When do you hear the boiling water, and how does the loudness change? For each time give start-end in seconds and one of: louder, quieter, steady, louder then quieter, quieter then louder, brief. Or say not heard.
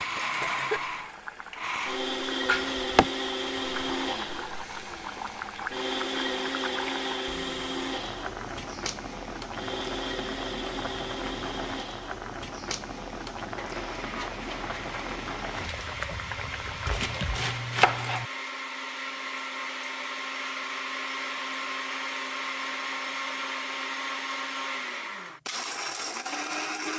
0.0-17.4 steady.